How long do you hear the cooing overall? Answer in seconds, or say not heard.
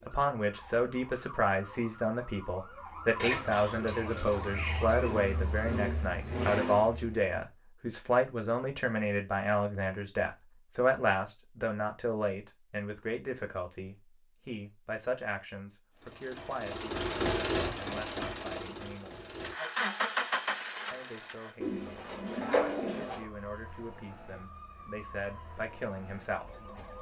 4 s.